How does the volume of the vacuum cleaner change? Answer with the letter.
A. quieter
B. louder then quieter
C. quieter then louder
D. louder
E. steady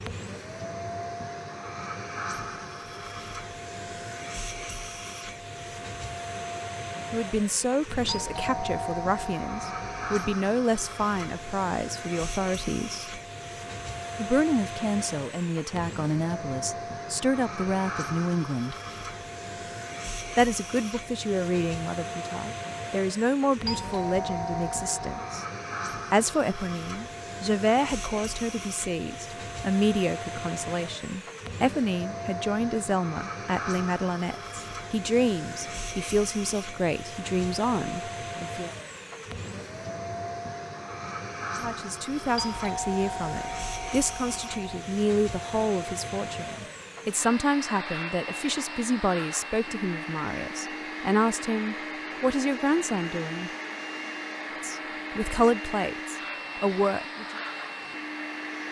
E.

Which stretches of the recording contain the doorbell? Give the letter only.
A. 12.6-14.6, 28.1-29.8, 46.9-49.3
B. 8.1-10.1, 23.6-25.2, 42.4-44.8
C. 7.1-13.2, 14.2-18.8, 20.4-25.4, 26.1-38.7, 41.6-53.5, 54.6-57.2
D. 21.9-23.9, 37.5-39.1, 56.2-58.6
B.